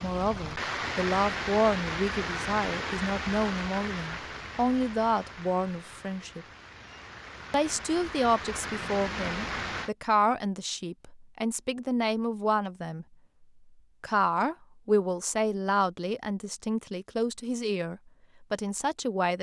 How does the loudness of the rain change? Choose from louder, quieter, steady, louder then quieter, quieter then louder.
quieter then louder.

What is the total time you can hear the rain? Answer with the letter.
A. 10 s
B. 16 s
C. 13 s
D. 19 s
A.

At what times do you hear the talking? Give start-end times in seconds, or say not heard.
0.0-6.5, 7.5-13.1, 14.0-19.3.